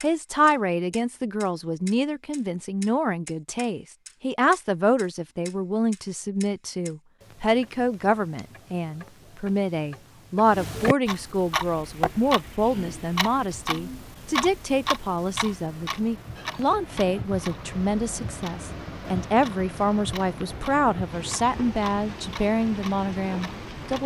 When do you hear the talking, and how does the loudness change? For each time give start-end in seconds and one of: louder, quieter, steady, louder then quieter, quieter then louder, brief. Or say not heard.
0.0-24.0 steady.